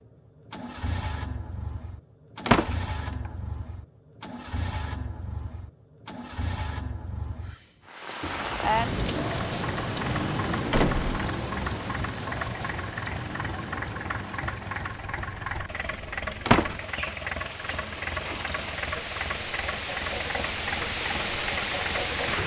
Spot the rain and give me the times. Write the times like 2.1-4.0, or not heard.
7.8-22.4.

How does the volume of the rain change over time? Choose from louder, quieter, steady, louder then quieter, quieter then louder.
quieter then louder.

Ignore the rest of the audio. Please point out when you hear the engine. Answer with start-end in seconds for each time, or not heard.
0.0-22.4.